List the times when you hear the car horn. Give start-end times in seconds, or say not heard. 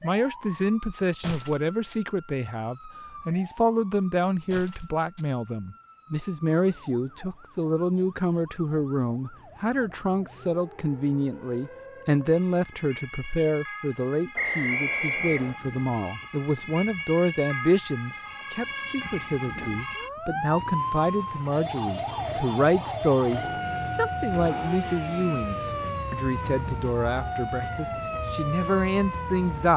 not heard.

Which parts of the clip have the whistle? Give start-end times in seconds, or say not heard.
14.3-15.6.